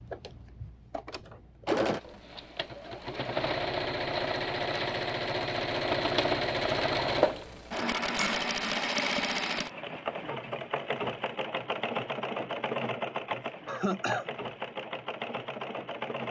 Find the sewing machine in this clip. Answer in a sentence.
You can hear the sewing machine from 0.0 to 16.2 s.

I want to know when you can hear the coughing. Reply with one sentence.
The coughing can be heard from 13.7 to 14.3 s.